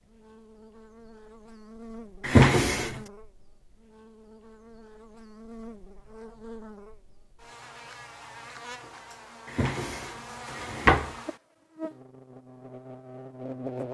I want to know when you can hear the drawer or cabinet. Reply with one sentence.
The drawer or cabinet can be heard from 2.2 to 3.0 s and from 9.6 to 11.1 s.